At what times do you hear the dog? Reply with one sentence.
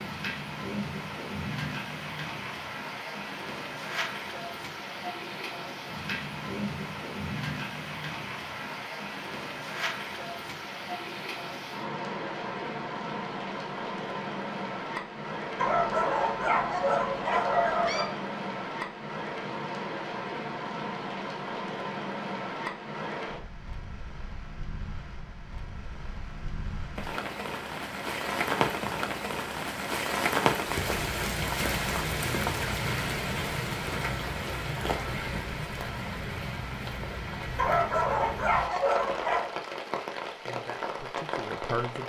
You can hear the dog from 15.6 to 18.1 s and from 37.5 to 39.5 s.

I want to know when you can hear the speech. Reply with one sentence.
You can hear the speech from 40.4 to 42.0 s.